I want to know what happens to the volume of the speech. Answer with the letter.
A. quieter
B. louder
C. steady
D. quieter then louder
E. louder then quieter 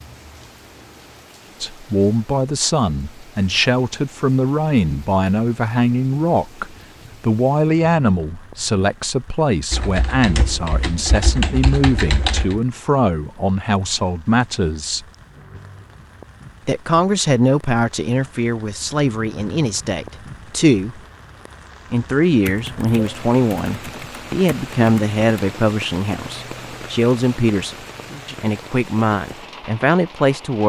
C.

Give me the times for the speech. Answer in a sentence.
You can hear the speech from 1.6 to 15.1 s, from 16.6 to 21.0 s and from 21.9 to 30.6 s.